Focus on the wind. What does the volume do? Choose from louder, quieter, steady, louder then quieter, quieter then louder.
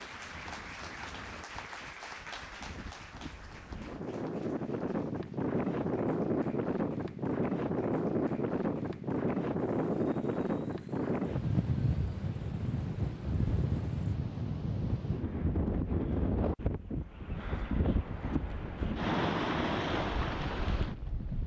louder.